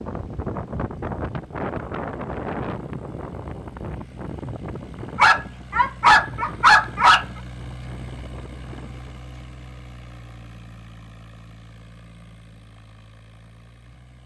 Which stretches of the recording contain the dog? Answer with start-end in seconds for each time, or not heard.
5.2-7.2.